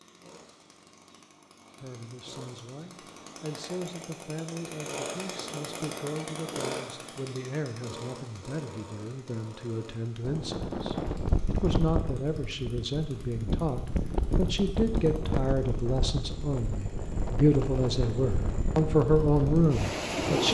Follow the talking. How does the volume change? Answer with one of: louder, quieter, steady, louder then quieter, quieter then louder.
louder.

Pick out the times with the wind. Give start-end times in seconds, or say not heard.
10.2-20.4.